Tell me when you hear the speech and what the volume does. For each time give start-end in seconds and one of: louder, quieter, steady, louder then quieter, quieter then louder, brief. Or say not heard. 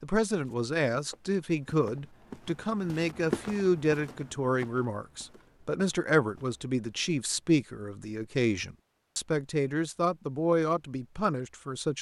0.0-11.9 steady.